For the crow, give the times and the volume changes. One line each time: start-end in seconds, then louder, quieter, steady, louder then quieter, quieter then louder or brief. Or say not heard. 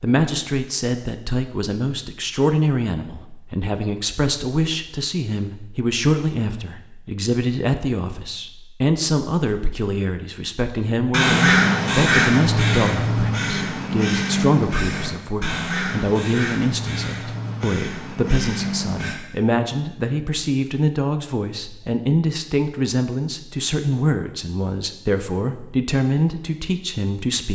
11.1-19.1 quieter.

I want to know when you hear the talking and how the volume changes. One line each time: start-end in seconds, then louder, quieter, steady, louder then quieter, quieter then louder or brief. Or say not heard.
0.0-27.5 steady.